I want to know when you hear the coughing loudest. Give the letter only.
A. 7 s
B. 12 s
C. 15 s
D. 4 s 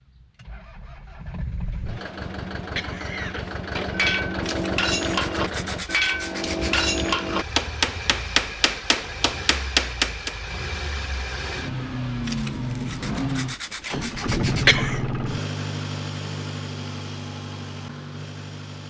C.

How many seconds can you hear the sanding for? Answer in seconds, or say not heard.
5 s.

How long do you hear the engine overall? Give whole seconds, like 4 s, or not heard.
19 s.